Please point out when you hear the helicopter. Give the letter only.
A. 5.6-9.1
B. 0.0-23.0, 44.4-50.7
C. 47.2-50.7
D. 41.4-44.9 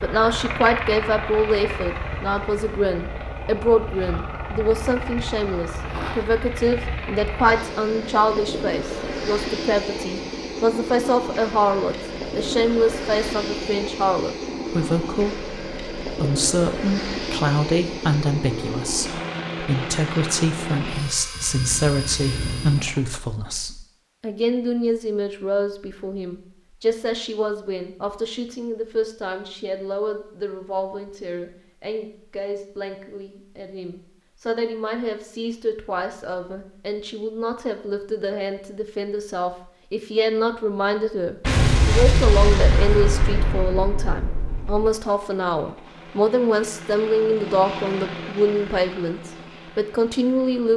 B.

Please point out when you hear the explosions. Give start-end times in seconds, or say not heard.
41.4-44.9.